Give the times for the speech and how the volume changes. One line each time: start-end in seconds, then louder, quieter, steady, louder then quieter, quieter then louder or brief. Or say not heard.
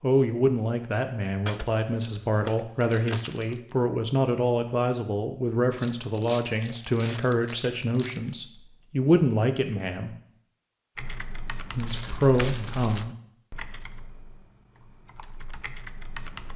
0.0-10.2 steady
11.7-13.2 brief.